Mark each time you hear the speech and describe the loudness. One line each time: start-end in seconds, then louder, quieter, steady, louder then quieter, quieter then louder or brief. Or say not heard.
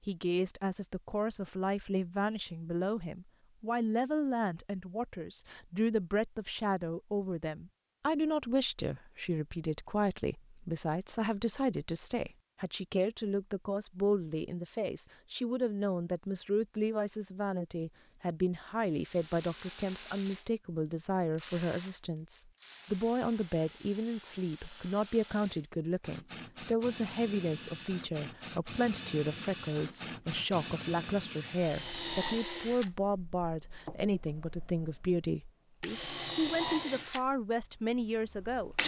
0.1-38.8 steady.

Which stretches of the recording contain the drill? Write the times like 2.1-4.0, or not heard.
18.9-38.8.